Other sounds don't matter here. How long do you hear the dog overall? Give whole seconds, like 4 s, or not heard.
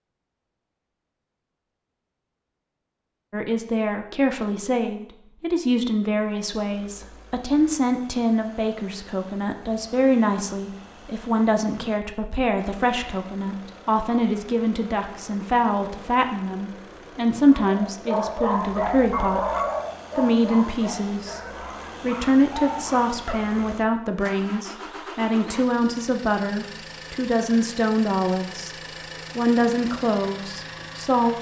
6 s.